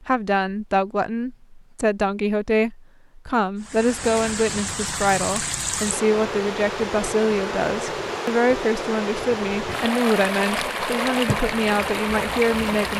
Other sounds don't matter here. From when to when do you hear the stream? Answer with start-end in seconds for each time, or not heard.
3.6-12.9.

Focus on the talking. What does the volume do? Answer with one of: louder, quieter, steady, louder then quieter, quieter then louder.
steady.